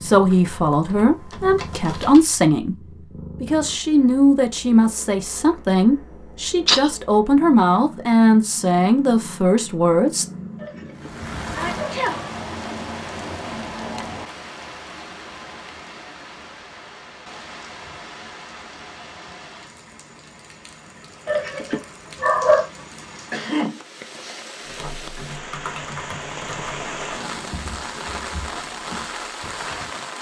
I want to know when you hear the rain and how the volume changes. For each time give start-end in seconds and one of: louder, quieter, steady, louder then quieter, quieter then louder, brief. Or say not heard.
10.9-30.1 quieter then louder.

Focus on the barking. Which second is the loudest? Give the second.
22 s.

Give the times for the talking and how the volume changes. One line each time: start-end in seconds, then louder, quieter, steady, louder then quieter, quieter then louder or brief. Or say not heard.
0.0-10.2 steady.